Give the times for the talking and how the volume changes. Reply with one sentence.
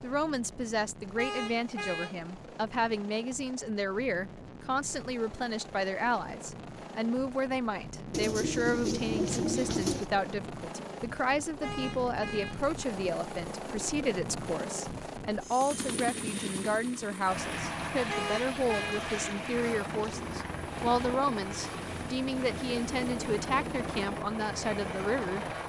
The talking can be heard from 0.0 to 25.5 s, at a steady volume.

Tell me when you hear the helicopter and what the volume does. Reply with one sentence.
The helicopter can be heard from 0.0 to 25.6 s, getting louder.